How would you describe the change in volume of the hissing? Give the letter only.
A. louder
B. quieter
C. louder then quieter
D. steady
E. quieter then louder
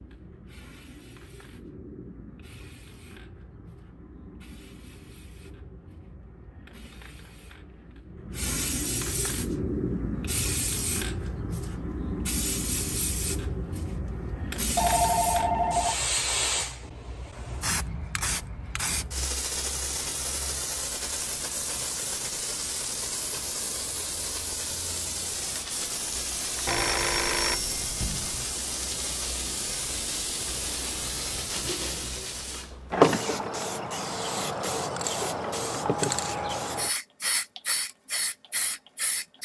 A.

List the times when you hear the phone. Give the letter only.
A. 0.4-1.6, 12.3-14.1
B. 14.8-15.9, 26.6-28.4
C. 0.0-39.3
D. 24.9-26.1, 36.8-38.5
B.